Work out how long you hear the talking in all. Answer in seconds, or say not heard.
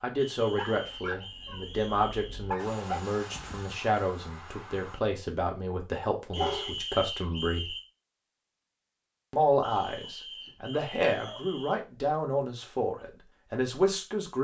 13 s.